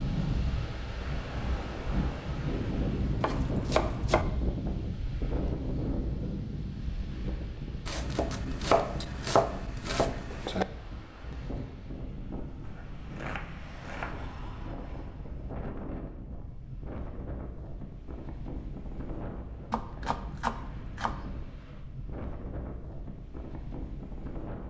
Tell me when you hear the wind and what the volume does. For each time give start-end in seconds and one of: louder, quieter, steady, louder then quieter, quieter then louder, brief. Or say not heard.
0.0-24.6 quieter.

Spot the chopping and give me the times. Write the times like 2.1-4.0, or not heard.
3.2-4.2, 7.8-10.7, 12.6-14.3, 19.7-21.1.